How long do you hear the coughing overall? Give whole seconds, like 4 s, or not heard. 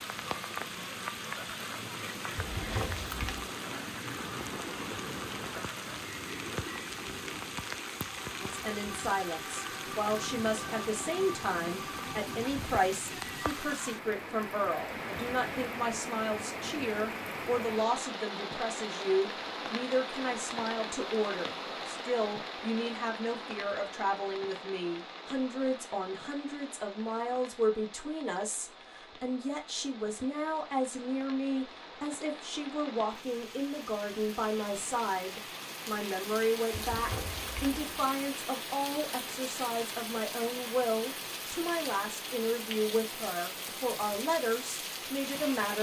2 s.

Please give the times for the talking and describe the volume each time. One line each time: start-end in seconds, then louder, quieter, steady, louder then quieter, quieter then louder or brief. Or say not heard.
8.4-45.7 steady.